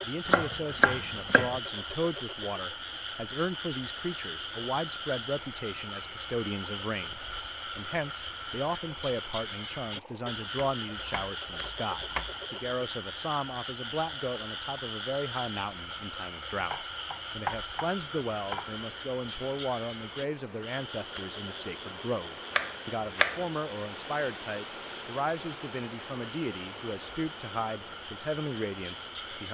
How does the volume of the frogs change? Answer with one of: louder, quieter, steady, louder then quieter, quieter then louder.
quieter.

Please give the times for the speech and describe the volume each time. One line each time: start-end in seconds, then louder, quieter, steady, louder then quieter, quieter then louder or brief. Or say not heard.
0.0-29.4 steady.